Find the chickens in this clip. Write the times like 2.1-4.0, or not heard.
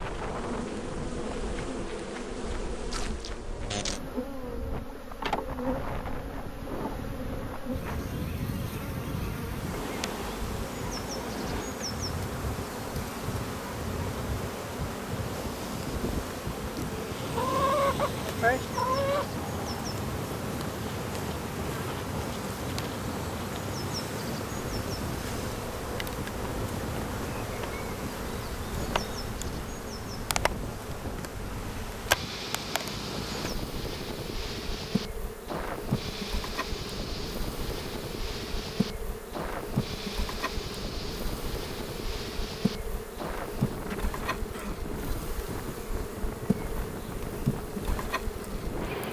17.3-19.3.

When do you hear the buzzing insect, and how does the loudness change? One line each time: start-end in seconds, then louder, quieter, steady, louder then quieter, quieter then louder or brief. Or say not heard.
0.0-49.0 steady.